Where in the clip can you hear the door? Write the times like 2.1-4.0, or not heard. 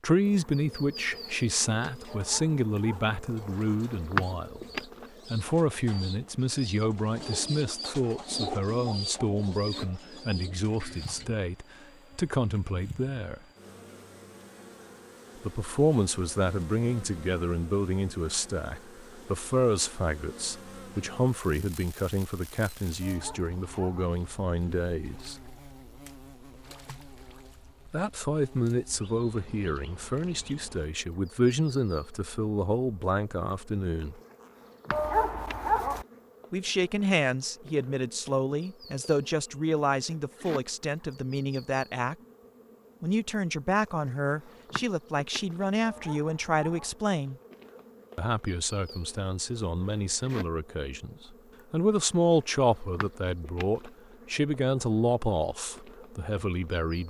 not heard.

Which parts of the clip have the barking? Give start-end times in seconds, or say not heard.
2.0-3.1, 23.0-24.1, 34.9-36.0, 45.8-47.0.